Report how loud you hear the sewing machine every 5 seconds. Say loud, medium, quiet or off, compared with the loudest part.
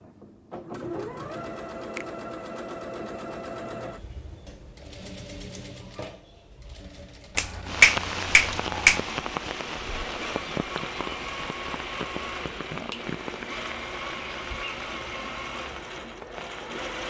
loud, medium, loud, loud.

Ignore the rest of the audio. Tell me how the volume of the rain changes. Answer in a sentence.
The volume of the rain goes down.